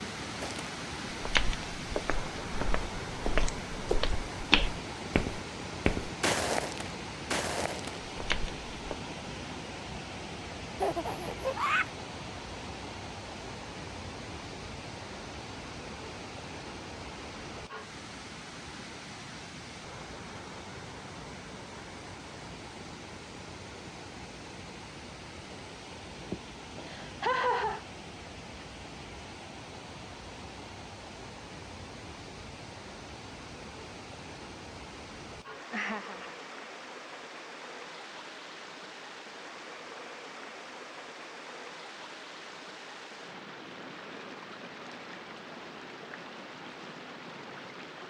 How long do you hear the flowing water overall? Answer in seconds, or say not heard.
48 s.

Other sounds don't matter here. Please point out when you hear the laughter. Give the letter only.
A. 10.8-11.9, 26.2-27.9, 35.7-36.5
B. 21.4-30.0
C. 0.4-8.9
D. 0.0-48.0
A.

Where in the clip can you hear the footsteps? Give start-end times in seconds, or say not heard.
0.4-8.9.